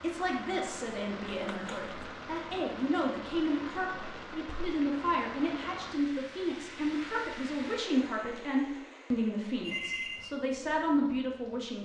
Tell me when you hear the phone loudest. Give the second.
10 s.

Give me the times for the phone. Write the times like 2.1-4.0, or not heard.
1.3-1.9, 9.6-10.3.